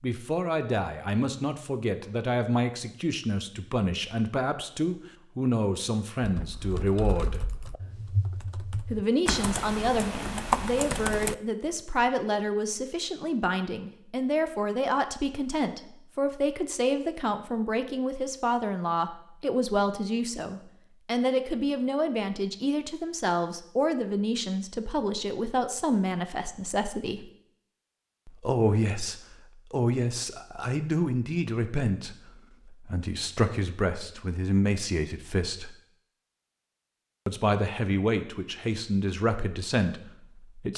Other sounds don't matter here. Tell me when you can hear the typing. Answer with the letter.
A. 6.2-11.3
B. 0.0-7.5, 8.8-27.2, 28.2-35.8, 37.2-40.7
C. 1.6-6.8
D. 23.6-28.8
A.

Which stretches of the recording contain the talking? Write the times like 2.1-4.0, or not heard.
0.0-7.5, 8.8-27.2, 28.2-35.8, 37.2-40.7.